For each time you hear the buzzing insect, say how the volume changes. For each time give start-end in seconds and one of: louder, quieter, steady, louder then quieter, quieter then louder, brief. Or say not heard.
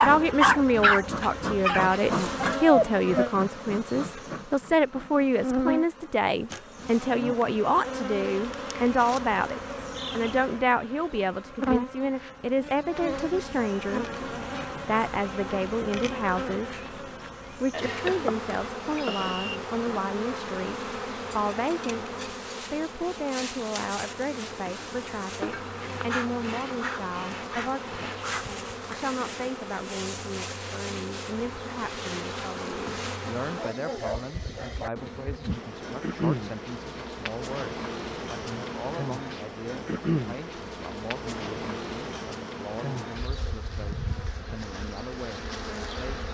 0.0-46.2 steady.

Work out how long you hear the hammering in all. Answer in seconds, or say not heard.
not heard.